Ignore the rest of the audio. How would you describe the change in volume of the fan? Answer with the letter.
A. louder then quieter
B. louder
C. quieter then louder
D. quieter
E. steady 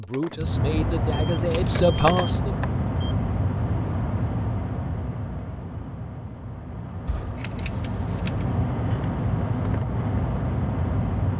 C.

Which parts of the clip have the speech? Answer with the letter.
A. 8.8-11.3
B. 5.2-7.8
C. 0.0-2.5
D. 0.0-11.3
C.